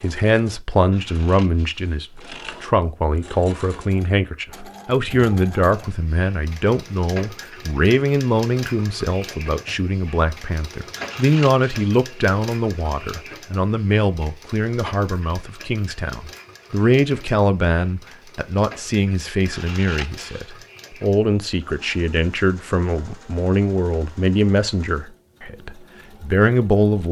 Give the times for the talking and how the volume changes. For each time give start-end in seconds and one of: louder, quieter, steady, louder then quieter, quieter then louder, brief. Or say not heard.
0.0-27.0 steady.